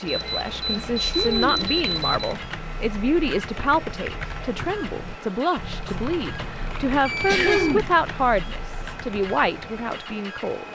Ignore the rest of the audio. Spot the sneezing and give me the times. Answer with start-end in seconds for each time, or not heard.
0.7-1.7, 7.2-7.9.